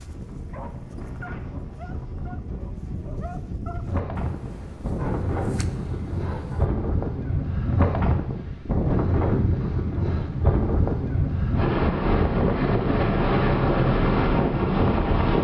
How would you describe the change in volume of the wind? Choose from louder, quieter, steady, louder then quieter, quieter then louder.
louder.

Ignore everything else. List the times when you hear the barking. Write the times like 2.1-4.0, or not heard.
0.0-6.7.